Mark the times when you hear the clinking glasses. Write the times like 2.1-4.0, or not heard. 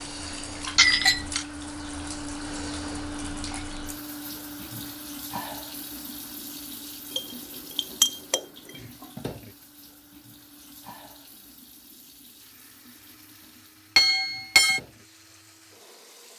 0.8-1.4, 7.2-8.4, 13.9-14.8.